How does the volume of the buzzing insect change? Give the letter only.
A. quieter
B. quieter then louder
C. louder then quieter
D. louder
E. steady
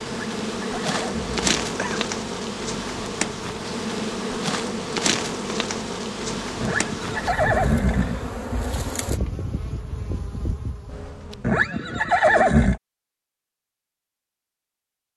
A.